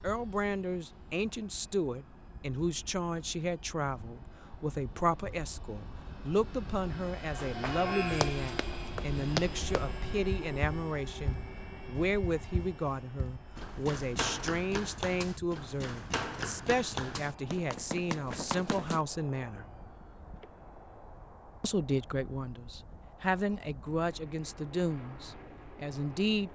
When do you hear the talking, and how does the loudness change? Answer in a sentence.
The talking can be heard from 0.0 to 19.6 s, at a steady volume; and from 21.6 to 26.4 s, getting louder then quieter.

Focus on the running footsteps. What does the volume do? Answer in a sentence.
The volume of the running footsteps goes down, then up.